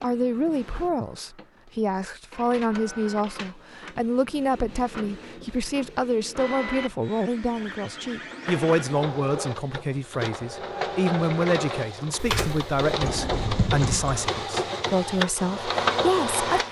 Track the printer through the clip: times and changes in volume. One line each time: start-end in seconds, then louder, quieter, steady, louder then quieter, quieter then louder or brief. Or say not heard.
0.0-16.6 louder.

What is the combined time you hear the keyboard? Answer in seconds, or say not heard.
2 s.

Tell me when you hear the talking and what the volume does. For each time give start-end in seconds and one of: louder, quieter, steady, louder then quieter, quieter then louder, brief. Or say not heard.
0.0-16.6 steady.